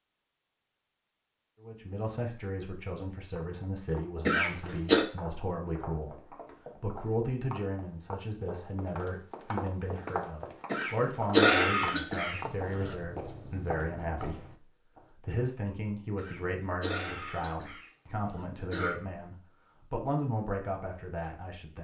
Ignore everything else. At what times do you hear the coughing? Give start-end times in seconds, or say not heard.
4.2-5.0, 10.7-12.9, 16.1-18.9.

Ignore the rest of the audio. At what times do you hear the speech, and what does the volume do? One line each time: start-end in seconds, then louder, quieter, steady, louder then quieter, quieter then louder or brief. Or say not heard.
1.6-21.7 steady.